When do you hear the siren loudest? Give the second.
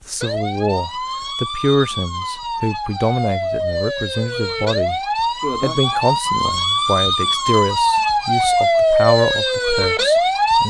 9 s.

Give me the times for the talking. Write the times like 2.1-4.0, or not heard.
0.1-5.0, 5.6-10.6.